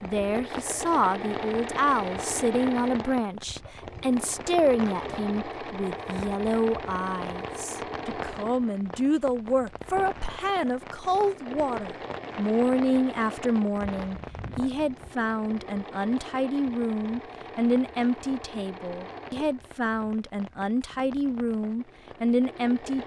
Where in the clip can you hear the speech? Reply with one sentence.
You can hear the speech from 0.0 to 23.0 s.